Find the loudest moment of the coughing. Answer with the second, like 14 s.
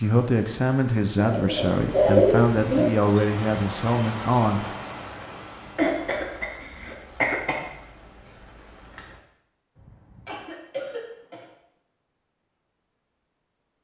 2 s.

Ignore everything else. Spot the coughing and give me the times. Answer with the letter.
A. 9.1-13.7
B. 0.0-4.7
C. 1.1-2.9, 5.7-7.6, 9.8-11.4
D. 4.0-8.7
C.